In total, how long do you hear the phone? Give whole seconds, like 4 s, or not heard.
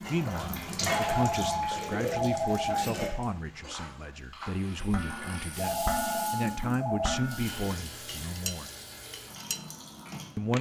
4 s.